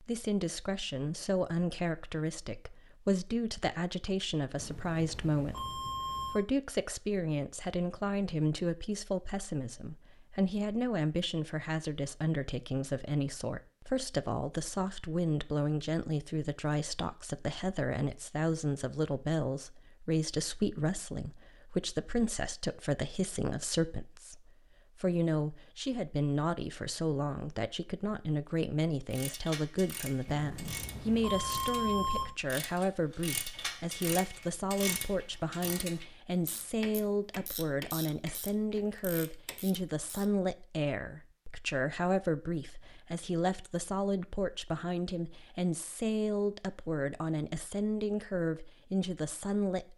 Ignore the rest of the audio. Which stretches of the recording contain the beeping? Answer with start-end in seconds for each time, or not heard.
4.5-6.5, 30.2-32.4.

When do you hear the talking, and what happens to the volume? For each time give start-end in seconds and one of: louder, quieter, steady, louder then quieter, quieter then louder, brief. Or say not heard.
0.0-49.9 steady.